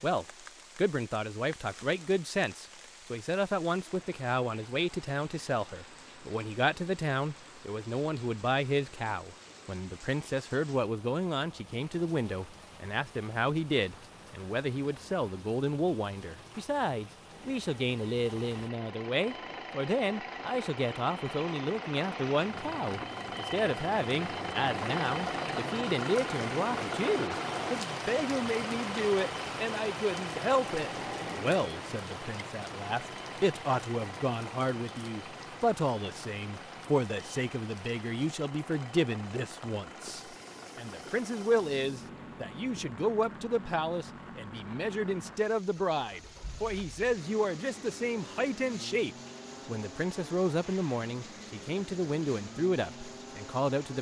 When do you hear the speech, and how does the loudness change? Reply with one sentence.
The speech can be heard from 0.0 to 53.9 s, at a steady volume.